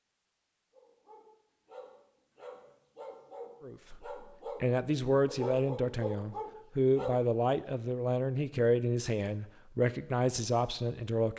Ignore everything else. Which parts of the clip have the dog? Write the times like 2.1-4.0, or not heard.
0.7-7.2.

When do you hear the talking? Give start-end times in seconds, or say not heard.
3.6-11.3.